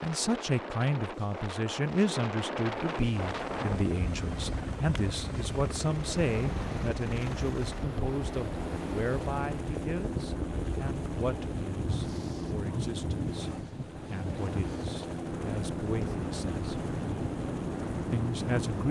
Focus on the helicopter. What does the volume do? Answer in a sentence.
The loudness of the helicopter stays about the same.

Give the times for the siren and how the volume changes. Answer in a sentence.
The siren can't be heard in this clip.